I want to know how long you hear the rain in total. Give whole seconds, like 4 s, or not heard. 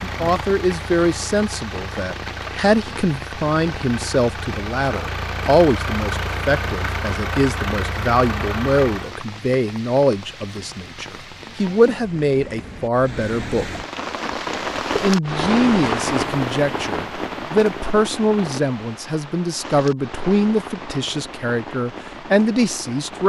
23 s.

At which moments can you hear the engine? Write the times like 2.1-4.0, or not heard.
0.0-9.2.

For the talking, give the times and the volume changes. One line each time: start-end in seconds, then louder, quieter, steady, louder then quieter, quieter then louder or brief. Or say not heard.
0.0-13.7 steady
14.9-23.2 steady.